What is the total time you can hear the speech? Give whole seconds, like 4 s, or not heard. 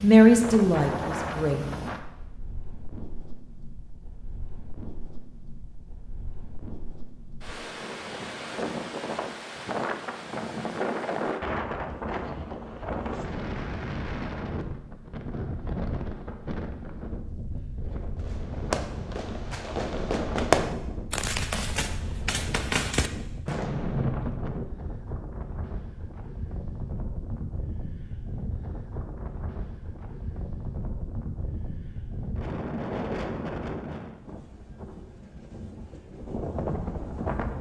2 s.